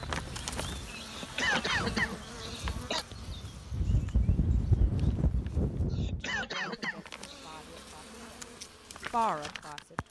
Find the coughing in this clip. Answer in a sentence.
You can hear the coughing from 1.1 to 3.0 s and from 5.9 to 7.8 s.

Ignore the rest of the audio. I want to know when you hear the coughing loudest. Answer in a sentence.
The loudest moment of the coughing is at 2 seconds.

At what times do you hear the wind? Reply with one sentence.
You can hear the wind from 0.0 to 6.5 s.